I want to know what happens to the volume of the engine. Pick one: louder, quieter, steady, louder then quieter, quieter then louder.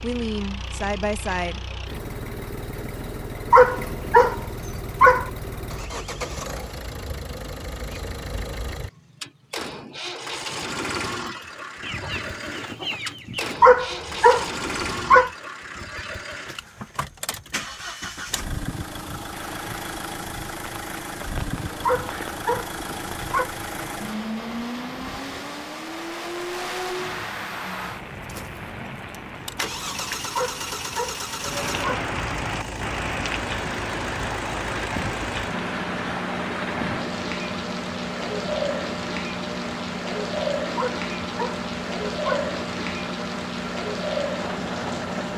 steady.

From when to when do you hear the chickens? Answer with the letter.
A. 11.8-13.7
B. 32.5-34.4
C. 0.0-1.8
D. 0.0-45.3
A.